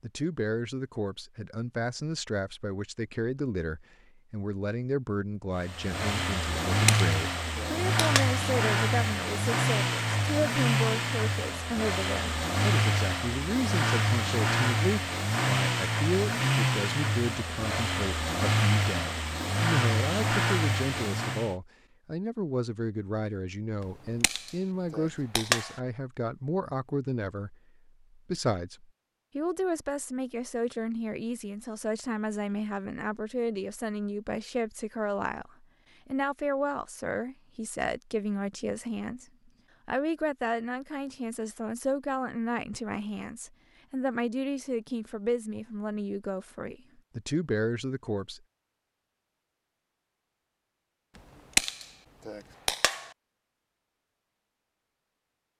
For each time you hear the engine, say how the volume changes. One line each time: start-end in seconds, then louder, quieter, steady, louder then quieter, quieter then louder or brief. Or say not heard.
5.5-21.6 steady.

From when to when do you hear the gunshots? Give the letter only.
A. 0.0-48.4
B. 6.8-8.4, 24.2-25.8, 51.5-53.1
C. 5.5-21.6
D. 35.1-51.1
B.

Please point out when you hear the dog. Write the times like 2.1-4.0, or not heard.
not heard.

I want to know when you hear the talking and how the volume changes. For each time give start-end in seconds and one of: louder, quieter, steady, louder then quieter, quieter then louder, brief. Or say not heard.
0.0-48.4 steady.